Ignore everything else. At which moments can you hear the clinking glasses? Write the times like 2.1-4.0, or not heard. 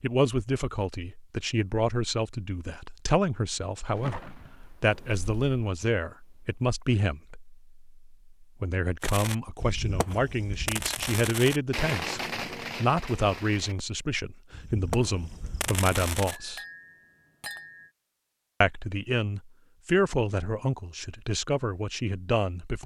16.3-17.9.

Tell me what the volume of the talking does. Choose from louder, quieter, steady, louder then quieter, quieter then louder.
steady.